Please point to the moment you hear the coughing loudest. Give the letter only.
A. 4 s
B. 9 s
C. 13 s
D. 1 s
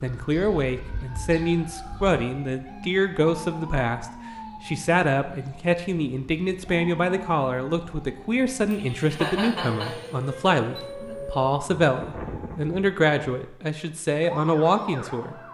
B.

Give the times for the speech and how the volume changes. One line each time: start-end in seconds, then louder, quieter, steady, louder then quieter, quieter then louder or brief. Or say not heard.
0.0-15.3 steady.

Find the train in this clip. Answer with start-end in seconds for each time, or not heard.
not heard.